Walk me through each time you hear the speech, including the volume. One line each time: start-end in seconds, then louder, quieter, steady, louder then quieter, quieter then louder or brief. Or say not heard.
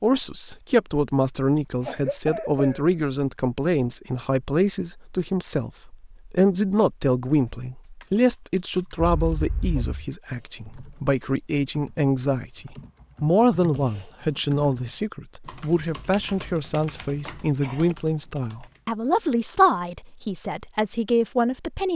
0.0-21.9 steady.